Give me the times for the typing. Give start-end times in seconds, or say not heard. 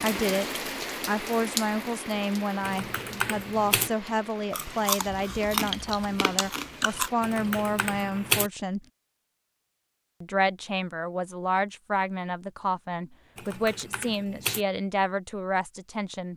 2.6-3.9, 7.2-8.5, 13.3-14.6.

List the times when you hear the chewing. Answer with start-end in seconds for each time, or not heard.
4.5-7.1.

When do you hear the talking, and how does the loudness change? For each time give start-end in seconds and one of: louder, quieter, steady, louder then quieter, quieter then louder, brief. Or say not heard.
0.0-8.8 steady
10.2-16.3 steady.